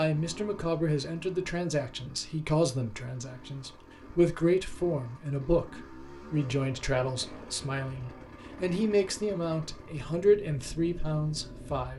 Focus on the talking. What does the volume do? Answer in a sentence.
The volume of the talking stays about the same.